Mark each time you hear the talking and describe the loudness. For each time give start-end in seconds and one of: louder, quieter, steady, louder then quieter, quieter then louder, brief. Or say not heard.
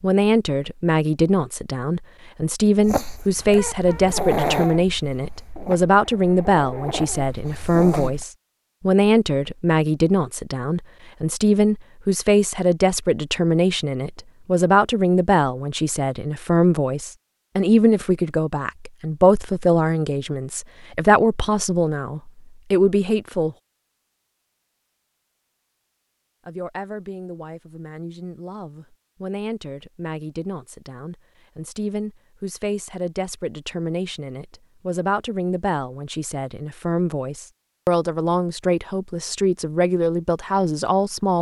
0.0-23.6 steady
26.4-41.3 louder.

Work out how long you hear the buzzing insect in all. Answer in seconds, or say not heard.
not heard.